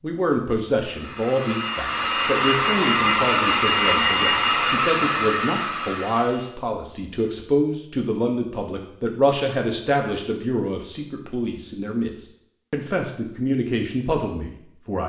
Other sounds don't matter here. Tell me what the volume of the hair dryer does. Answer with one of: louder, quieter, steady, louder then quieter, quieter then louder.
louder then quieter.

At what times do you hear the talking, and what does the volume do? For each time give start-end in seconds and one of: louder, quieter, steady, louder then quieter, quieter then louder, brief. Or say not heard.
0.0-15.0 steady.